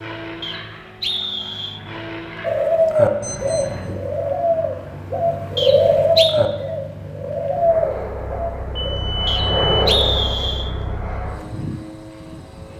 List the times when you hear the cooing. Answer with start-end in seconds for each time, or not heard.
2.4-8.9.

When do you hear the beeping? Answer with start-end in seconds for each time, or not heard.
3.2-3.6, 8.8-9.8.